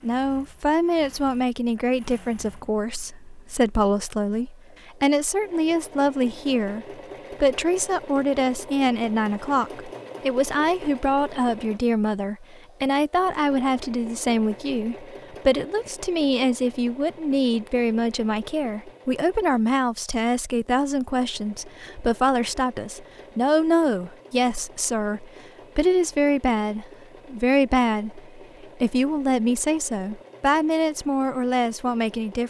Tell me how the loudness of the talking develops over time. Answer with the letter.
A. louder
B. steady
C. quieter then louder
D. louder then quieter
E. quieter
B.